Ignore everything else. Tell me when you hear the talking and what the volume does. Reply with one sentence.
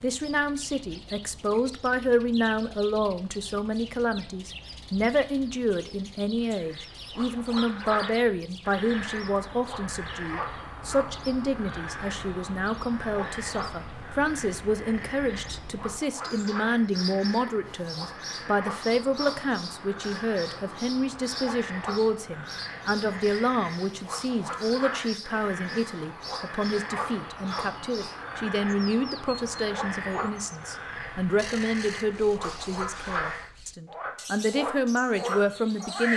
You can hear the talking from 0.0 to 36.1 s, at a steady volume.